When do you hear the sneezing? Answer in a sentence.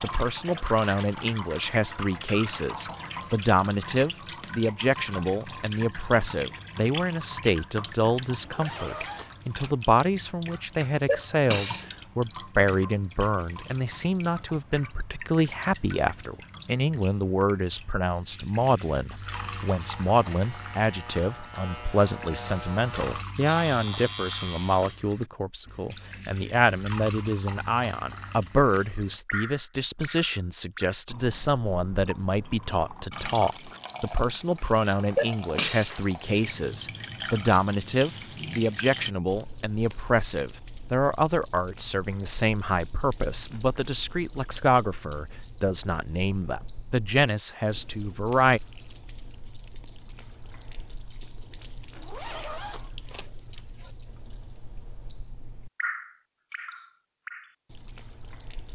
The sneezing can be heard from 11.1 to 11.8 s and from 35.1 to 36.0 s.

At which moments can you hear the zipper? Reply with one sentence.
You can hear the zipper from 8.4 to 10.1 s and from 52.0 to 53.9 s.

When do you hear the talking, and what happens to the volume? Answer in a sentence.
You can hear the talking from 0.0 to 48.6 s, at a steady volume.